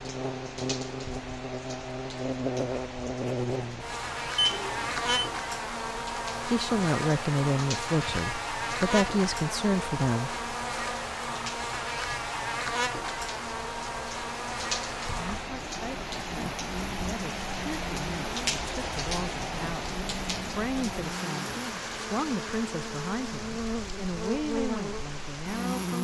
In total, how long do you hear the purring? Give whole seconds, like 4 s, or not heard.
not heard.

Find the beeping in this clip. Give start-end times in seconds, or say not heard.
4.3-5.3.